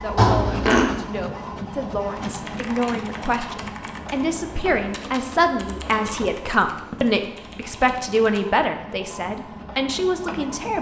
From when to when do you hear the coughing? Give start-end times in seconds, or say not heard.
0.1-0.8, 6.0-7.0.